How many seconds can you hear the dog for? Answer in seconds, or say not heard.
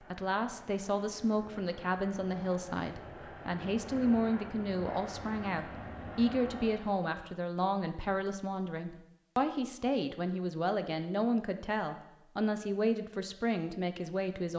not heard.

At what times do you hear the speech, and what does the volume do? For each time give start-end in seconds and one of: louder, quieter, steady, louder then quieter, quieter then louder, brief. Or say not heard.
0.0-14.5 steady.